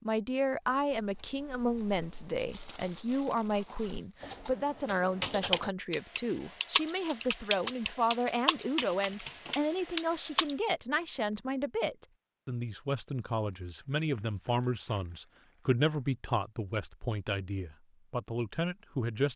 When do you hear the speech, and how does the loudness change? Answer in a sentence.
The speech can be heard from 0.0 to 19.3 s, at a steady volume.